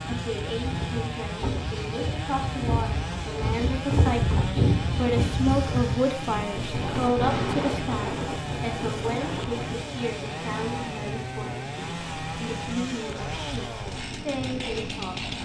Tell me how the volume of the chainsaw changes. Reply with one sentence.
The volume of the chainsaw stays about the same.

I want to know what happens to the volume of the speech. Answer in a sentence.
The loudness of the speech goes up, then down.